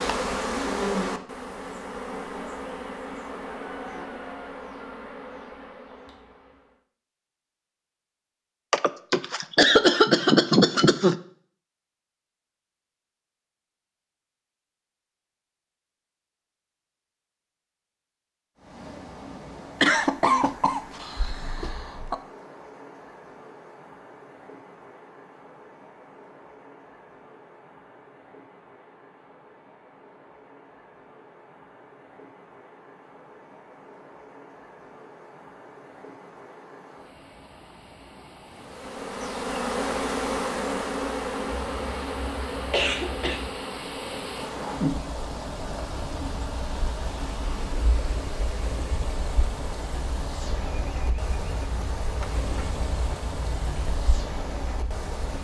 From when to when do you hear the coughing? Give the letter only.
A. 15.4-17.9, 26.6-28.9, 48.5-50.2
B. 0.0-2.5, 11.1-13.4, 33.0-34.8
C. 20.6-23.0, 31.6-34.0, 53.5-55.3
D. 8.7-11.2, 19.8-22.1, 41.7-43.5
D.